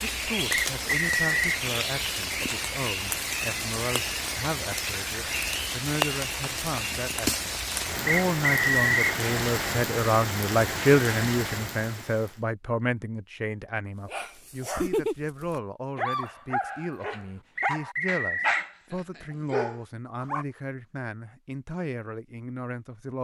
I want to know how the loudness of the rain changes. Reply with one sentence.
The volume of the rain stays about the same.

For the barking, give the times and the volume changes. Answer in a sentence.
You can hear the barking from 14.1 to 20.4 s, at a steady volume.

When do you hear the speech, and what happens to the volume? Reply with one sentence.
You can hear the speech from 0.0 to 23.1 s, getting louder then quieter.